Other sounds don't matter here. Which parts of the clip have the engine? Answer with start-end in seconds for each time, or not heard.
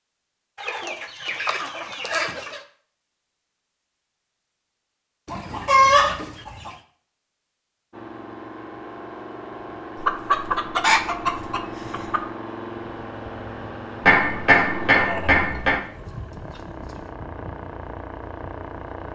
7.9-19.1.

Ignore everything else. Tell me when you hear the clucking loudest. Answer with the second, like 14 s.
6 s.